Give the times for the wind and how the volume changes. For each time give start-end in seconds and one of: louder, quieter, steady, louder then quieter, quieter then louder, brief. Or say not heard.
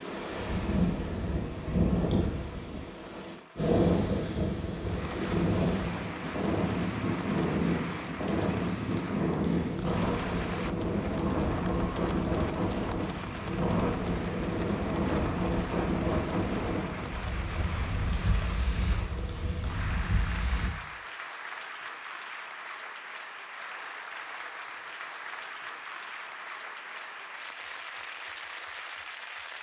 0.0-20.7 quieter.